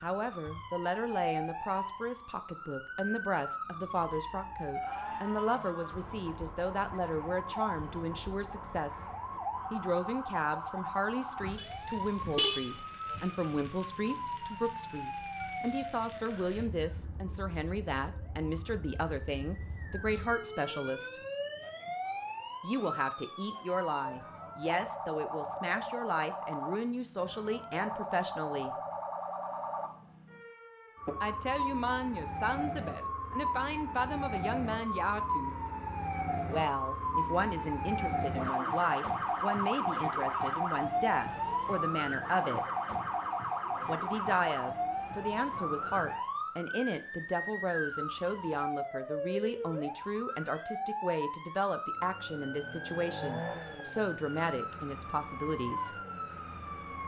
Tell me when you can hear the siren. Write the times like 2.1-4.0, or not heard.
0.0-57.0.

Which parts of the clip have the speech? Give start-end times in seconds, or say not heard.
0.0-9.1, 9.7-21.1, 22.6-28.8, 31.2-35.5, 36.5-42.6, 43.9-56.0.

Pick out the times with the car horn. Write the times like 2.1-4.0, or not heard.
11.6-12.8.